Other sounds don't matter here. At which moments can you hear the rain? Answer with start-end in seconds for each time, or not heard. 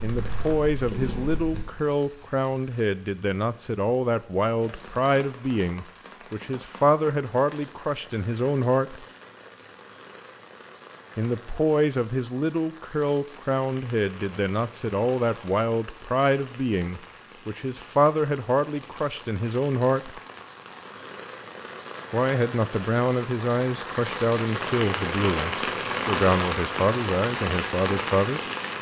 0.0-28.7.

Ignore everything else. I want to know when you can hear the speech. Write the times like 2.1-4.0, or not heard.
0.0-9.1, 11.2-20.2, 22.1-28.4.